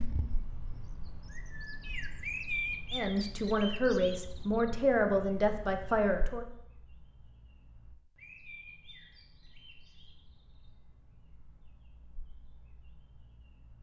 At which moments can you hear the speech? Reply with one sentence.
The speech can be heard from 2.9 to 6.5 s.